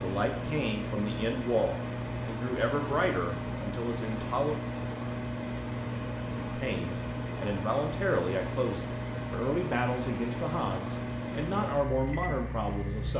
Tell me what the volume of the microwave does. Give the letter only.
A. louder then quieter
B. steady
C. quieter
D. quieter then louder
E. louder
B.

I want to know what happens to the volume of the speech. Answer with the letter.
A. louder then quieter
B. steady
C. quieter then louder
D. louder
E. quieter
B.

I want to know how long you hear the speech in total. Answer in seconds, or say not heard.
11 s.